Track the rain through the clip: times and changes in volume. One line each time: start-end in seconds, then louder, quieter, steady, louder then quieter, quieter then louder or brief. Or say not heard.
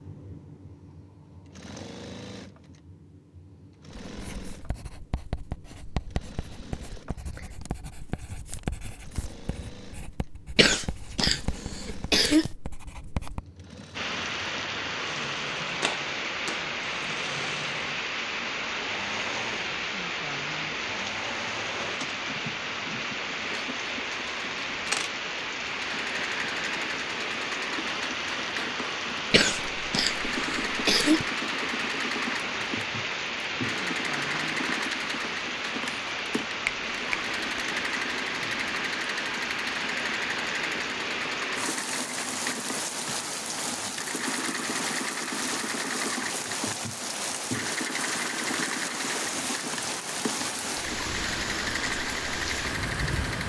13.9-53.4 steady.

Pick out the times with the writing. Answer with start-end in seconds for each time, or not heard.
4.0-13.4.